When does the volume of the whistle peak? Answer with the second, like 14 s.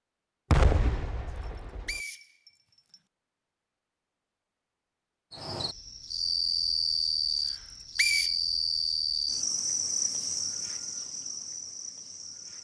8 s.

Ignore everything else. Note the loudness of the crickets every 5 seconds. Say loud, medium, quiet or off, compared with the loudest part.
off, loud, medium.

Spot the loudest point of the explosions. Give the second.
1 s.